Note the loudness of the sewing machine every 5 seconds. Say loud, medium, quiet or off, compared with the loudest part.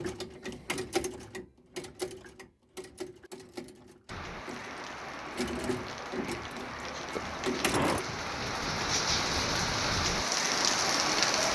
loud, loud, off.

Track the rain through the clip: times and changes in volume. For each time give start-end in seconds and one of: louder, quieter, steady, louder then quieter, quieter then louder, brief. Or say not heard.
4.0-11.5 louder.